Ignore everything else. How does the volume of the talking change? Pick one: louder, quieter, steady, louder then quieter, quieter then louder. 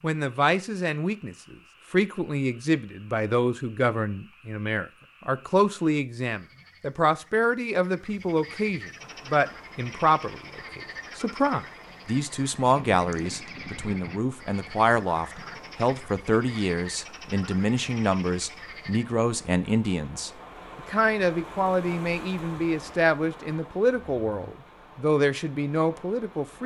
steady.